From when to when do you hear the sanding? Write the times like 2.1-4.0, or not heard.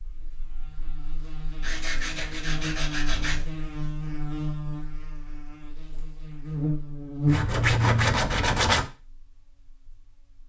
1.6-3.5, 7.2-8.9.